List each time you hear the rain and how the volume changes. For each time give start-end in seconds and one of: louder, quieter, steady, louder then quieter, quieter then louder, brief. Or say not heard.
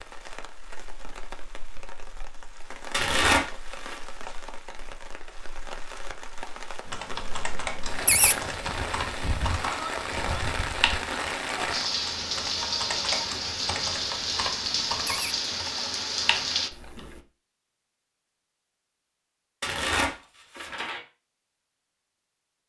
0.0-16.7 louder.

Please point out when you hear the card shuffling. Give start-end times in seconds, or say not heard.
2.9-4.0, 19.6-21.0.